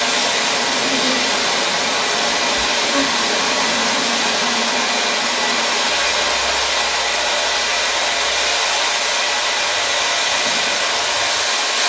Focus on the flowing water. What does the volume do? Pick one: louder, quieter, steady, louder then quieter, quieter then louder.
steady.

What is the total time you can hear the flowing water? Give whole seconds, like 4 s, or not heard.
12 s.